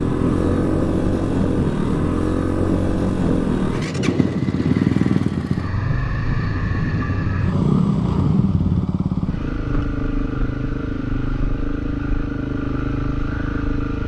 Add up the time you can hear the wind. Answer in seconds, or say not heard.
9 s.